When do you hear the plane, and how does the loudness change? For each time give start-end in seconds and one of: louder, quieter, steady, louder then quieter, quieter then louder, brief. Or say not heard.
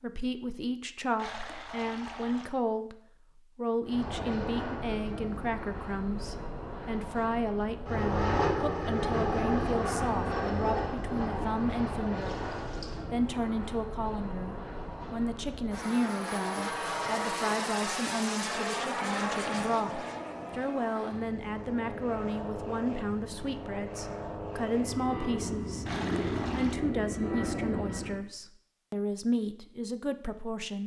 3.9-28.2 steady.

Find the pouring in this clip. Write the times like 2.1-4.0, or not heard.
1.1-2.5, 12.2-13.1, 25.9-26.8.